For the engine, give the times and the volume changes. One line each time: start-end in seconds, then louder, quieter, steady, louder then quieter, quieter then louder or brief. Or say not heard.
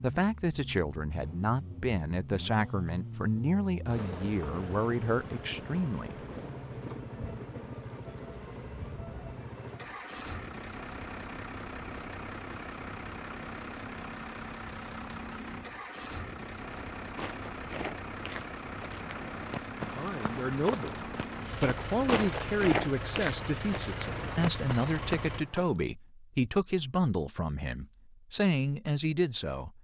0.0-25.4 steady.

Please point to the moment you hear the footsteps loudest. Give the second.
23 s.